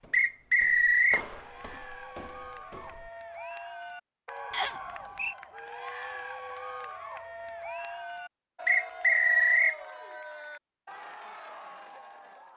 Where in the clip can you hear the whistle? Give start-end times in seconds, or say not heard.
0.1-1.2, 4.5-5.3, 8.7-9.8.